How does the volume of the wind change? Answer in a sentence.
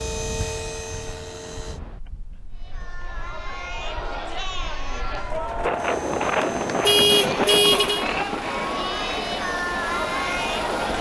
The volume of the wind goes down, then up.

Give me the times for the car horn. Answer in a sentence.
The car horn can be heard from 6.8 to 8.1 s.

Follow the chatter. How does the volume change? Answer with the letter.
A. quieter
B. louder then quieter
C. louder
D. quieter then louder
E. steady
C.